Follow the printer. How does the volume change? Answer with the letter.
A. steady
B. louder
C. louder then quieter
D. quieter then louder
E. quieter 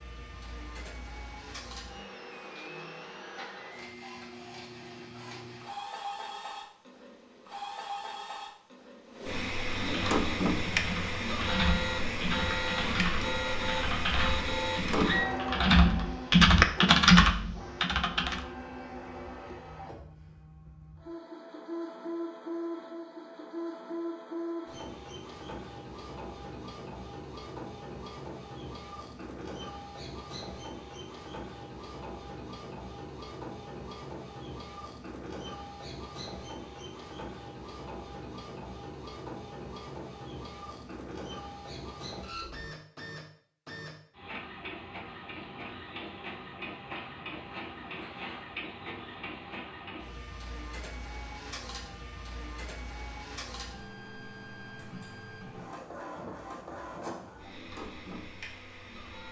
E.